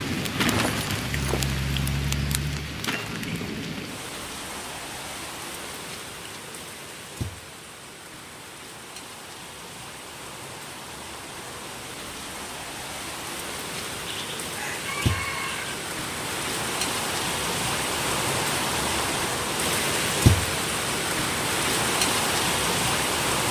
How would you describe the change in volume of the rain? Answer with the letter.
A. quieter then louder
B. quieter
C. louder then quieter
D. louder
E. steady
A.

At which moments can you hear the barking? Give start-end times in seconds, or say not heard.
not heard.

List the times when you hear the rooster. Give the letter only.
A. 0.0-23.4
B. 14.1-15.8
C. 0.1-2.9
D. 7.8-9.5
B.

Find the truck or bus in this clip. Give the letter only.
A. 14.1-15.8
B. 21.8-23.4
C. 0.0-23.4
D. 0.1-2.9
D.